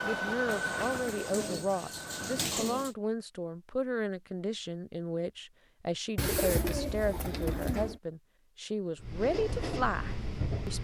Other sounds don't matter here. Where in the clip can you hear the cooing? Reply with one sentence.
The cooing can be heard from 0.5 to 3.0 s and from 6.2 to 8.0 s.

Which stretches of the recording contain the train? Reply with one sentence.
The train can be heard from 0.0 to 2.5 s and from 8.9 to 10.7 s.